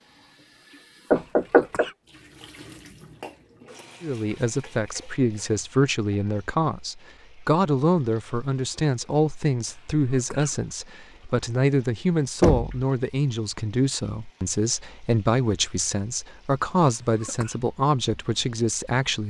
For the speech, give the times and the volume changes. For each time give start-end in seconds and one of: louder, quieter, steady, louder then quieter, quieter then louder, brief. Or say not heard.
4.0-19.2 steady.